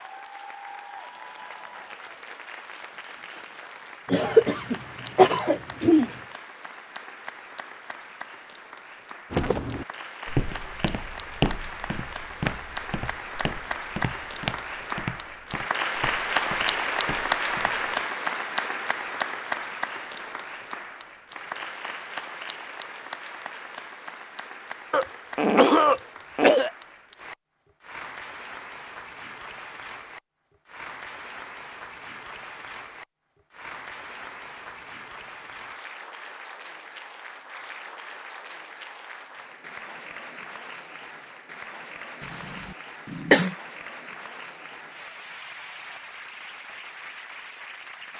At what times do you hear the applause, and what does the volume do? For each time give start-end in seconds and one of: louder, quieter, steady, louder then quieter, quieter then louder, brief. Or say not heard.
0.0-48.1 louder then quieter.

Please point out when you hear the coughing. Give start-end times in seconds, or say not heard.
4.0-6.1, 24.9-26.7, 42.6-43.5.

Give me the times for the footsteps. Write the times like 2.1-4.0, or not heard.
9.3-17.9.